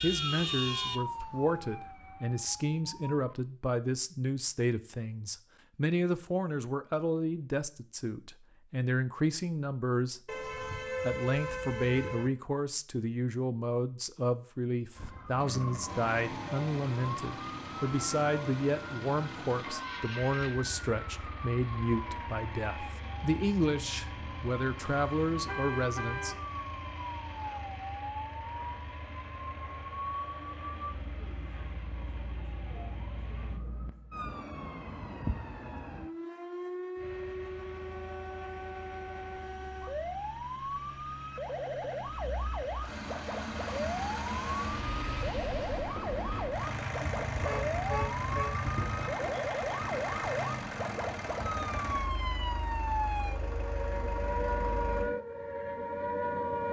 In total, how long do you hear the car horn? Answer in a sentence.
You can hear the car horn for 5 seconds altogether.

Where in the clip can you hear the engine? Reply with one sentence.
You can hear the engine from 15.3 to 33.6 s and from 37.0 to 55.1 s.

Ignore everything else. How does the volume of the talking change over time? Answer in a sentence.
The loudness of the talking stays about the same.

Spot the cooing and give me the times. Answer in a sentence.
The cooing can't be heard in this clip.